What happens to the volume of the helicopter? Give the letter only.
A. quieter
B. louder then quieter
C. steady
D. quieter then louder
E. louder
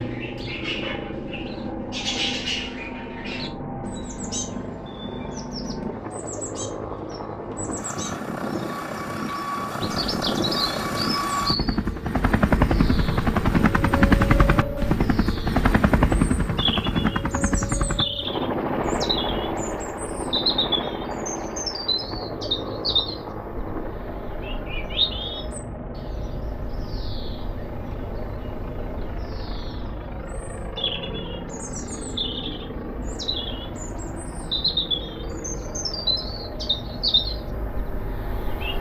B.